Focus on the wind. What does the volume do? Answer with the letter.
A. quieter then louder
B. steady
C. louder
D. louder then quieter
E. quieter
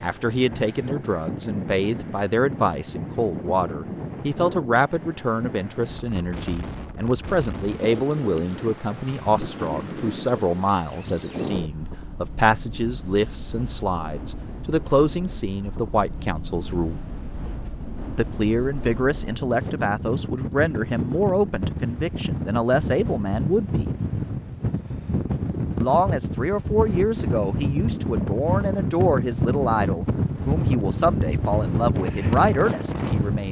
C.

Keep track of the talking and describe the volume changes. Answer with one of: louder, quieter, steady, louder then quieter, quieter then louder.
steady.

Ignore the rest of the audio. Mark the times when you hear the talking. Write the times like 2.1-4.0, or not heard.
0.0-16.9, 18.1-23.9, 25.8-33.4.